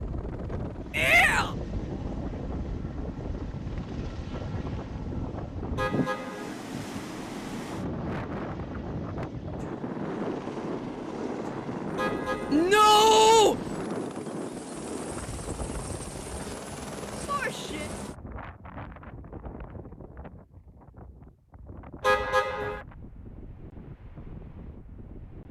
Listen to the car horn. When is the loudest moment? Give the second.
22 s.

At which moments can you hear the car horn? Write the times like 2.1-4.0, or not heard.
5.8-6.5, 11.9-12.8, 22.0-22.9.